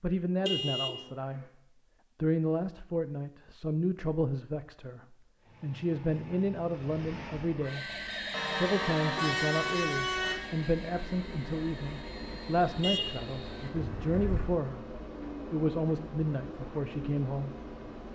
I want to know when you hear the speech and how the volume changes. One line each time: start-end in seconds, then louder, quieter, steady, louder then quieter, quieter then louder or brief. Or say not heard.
0.0-17.6 steady.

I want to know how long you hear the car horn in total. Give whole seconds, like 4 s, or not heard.
4 s.